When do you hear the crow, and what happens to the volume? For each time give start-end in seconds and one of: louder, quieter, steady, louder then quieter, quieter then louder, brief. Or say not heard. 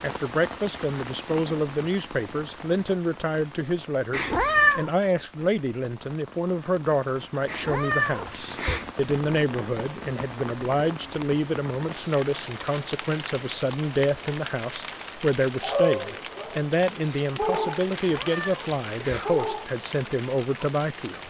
not heard.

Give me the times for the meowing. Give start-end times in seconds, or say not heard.
4.1-4.9, 7.5-8.9, 17.9-19.4.